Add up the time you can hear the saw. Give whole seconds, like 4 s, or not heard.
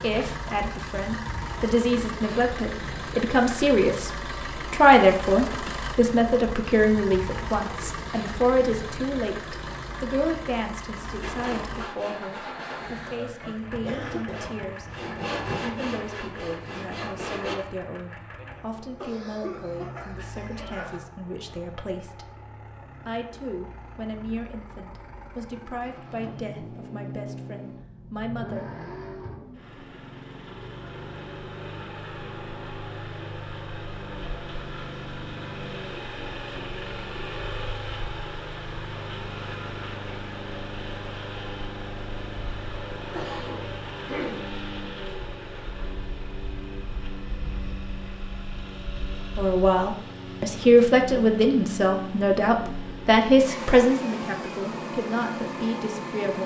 6 s.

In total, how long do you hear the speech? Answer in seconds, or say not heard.
34 s.